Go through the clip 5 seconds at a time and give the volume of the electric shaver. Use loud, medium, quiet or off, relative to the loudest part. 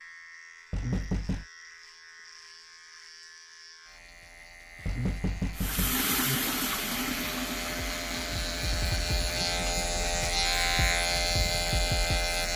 quiet, medium, loud.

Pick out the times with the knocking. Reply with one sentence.
The knocking can be heard from 0.7 to 1.4 s, from 4.8 to 6.4 s and from 9.2 to 10.0 s.